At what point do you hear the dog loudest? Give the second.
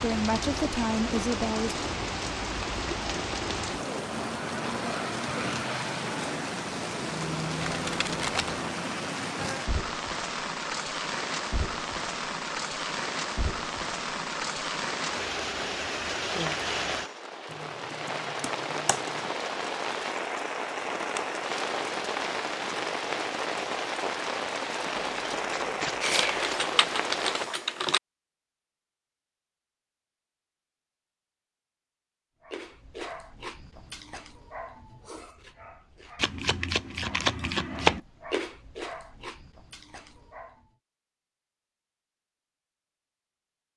38 s.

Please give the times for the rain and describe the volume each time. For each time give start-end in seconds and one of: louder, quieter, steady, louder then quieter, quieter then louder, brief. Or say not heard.
0.0-27.5 steady.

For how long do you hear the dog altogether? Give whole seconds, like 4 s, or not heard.
8 s.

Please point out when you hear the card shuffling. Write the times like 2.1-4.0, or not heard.
7.6-8.6, 25.1-26.6, 36.2-38.0.